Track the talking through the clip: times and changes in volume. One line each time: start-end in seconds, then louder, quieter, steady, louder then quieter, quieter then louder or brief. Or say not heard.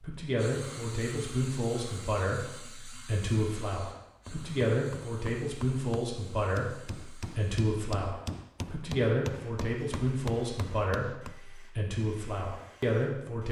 0.0-13.4 steady.